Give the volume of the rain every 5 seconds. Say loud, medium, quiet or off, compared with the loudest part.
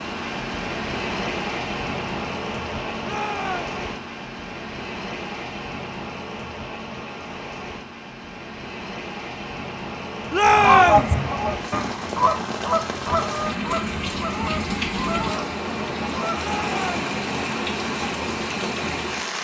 loud, medium, loud, loud.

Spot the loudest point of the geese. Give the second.
11 s.